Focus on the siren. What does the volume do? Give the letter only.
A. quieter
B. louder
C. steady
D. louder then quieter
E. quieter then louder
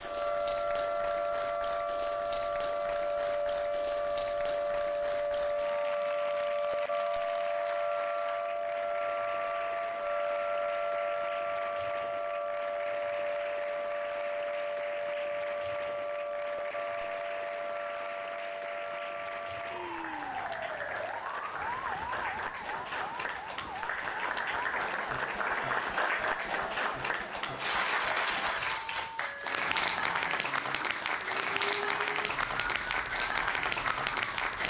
A.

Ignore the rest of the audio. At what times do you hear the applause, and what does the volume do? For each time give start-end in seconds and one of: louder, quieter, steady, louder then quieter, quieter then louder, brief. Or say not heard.
0.0-34.6 louder.